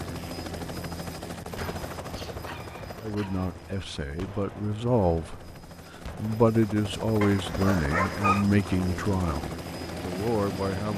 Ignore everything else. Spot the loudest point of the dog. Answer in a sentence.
The loudest moment of the dog is at 8 seconds.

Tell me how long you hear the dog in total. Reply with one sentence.
You can hear the dog for 3 seconds altogether.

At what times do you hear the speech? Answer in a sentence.
You can hear the speech from 3.0 to 5.5 s and from 6.2 to 10.9 s.